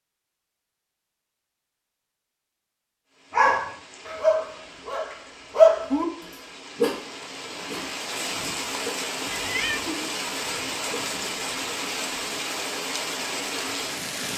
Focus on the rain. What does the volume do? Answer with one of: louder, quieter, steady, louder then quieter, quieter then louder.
louder.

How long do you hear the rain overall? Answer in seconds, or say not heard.
11 s.